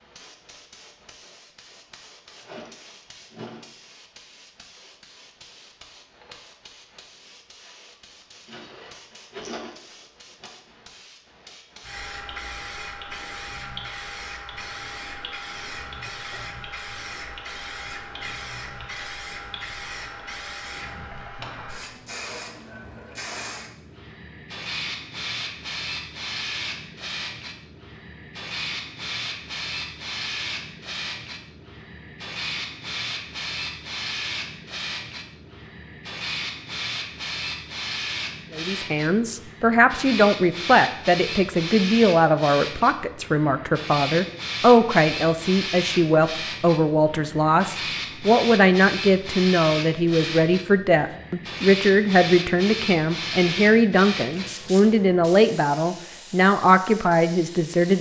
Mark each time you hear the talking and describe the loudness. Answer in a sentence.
The talking can be heard from 38.5 to 57.9 s, at a steady volume.